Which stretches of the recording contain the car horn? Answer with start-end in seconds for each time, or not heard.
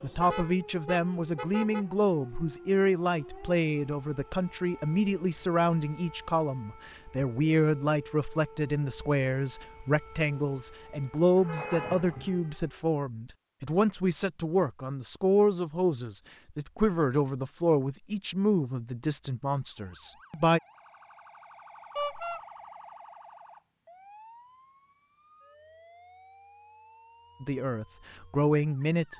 0.2-1.9, 11.3-12.4, 21.9-22.4.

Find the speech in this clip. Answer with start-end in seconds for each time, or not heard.
0.0-20.6, 27.4-29.1.